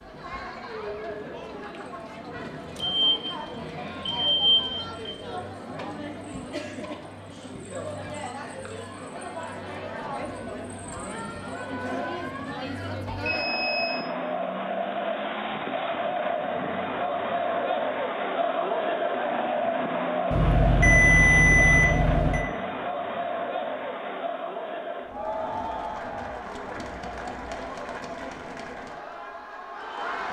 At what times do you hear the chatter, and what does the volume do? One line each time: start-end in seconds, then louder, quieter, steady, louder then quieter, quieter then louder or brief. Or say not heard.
0.0-30.2 louder then quieter.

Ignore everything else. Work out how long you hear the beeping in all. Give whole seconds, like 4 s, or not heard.
5 s.